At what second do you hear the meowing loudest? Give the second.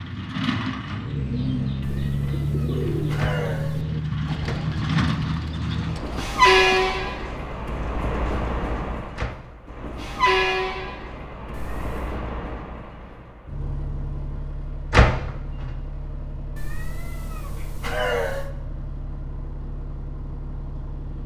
18 s.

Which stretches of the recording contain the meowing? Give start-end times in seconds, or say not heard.
1.8-3.9, 11.5-12.2, 16.6-18.5.